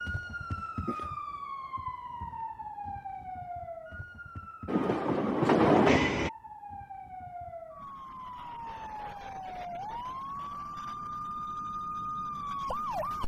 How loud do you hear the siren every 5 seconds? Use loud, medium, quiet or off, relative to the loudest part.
loud, medium, loud.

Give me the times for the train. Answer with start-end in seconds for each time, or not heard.
4.7-6.3.